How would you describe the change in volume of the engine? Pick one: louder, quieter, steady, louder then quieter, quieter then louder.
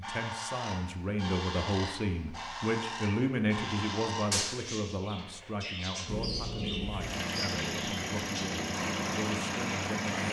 steady.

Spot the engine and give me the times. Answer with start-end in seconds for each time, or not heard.
6.0-10.2.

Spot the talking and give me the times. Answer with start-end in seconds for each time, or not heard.
0.0-10.2.